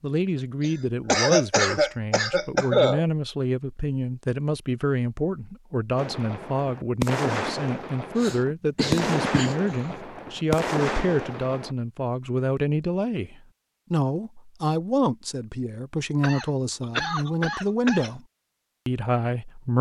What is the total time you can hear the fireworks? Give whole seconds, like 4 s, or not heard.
6 s.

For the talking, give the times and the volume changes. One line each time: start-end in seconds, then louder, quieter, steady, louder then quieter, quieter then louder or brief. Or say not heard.
0.0-18.2 steady
18.9-19.7 brief.